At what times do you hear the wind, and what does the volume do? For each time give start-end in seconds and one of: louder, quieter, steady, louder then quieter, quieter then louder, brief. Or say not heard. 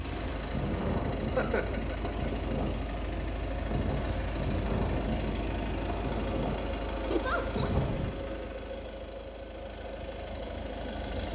0.0-8.1 steady.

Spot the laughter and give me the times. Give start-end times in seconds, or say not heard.
1.3-2.1, 7.1-7.7.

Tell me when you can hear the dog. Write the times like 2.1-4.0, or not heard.
not heard.